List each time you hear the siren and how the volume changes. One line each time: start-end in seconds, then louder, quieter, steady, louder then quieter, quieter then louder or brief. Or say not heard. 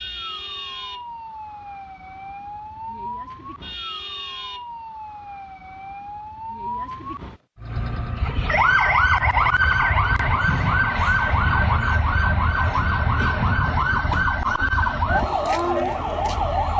0.0-16.7 louder.